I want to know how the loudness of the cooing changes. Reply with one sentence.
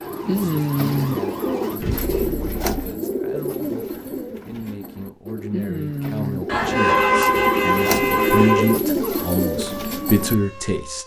The loudness of the cooing goes down, then up.